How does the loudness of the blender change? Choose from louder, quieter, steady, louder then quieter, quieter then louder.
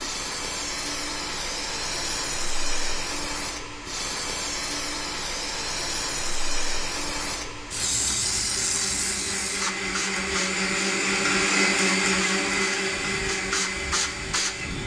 louder.